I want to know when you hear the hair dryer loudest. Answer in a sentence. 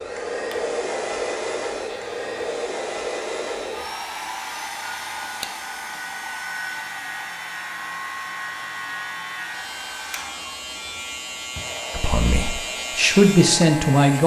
The volume of the hair dryer peaks at 1 second.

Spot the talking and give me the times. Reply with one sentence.
You can hear the talking from 11.9 to 14.2 s.